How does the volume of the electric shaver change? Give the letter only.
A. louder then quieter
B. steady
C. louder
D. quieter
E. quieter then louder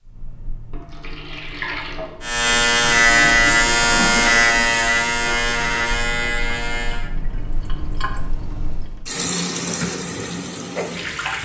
D.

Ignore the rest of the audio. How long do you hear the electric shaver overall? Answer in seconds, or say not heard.
5 s.